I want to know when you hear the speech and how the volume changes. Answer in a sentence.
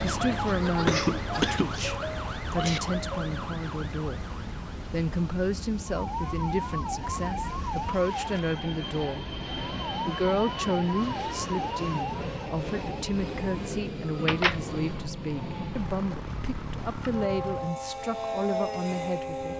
You can hear the speech from 0.0 to 9.3 s, at a steady volume; and from 10.1 to 19.5 s, at a steady volume.